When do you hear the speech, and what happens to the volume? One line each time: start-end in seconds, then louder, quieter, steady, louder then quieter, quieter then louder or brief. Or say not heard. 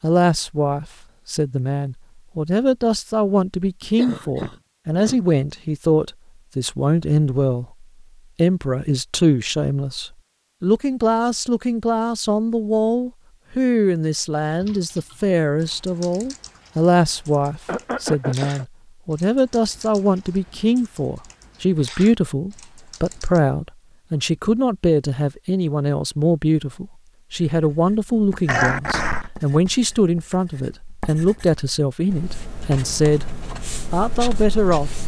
0.0-33.2 steady
33.9-35.0 brief.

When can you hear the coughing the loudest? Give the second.
29 s.